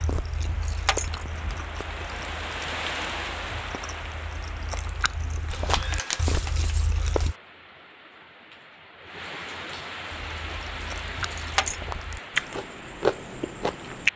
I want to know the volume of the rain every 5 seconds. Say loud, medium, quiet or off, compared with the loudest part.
loud, medium, loud.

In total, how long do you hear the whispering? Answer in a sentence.
The whispering can't be heard in this clip.